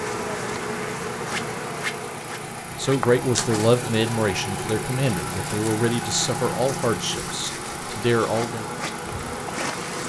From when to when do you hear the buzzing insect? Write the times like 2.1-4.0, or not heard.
0.0-10.0.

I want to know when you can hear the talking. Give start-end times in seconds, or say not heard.
2.8-8.7.